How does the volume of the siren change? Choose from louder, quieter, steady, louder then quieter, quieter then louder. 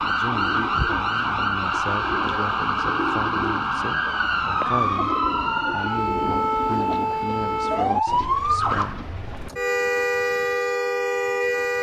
steady.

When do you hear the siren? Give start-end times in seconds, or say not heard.
0.0-11.7.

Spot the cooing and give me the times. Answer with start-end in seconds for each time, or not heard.
0.0-9.5.